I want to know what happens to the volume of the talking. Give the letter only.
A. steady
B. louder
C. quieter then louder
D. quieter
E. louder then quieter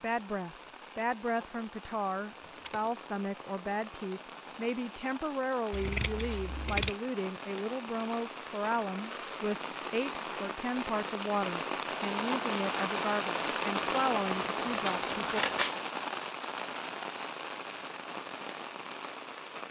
A.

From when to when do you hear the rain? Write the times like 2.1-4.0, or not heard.
0.0-19.6.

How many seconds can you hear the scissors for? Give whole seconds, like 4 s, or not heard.
3 s.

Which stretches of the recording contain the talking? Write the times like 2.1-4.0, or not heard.
0.0-15.4.